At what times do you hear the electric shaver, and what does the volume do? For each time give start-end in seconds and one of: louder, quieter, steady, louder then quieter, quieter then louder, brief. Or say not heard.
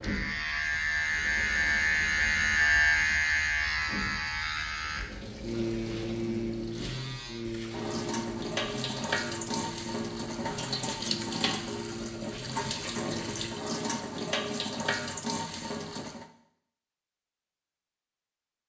0.0-13.6 quieter.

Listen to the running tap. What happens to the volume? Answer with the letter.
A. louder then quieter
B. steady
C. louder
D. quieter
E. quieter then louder
C.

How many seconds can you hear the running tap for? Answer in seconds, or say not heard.
16 s.